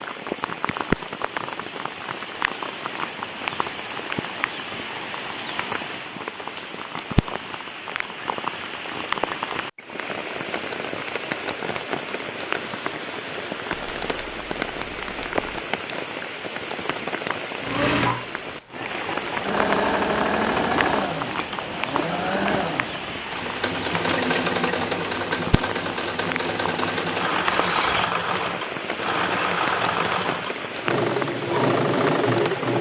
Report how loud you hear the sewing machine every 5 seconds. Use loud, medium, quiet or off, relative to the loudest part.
off, off, off, loud, loud, loud, loud.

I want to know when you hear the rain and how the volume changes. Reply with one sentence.
You can hear the rain from 0.0 to 32.7 s, at a steady volume.